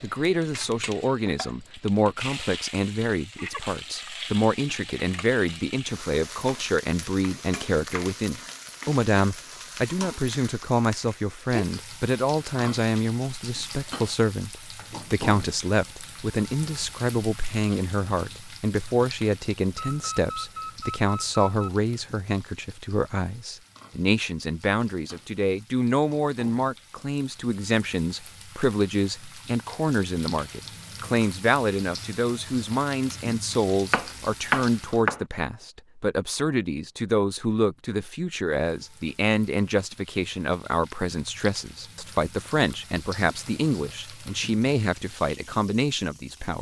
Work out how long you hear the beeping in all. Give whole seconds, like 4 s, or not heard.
2 s.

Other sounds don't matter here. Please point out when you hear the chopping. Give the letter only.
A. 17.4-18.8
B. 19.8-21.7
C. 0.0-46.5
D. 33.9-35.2
D.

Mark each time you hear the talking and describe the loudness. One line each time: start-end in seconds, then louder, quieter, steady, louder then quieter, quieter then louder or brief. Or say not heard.
0.0-46.5 steady.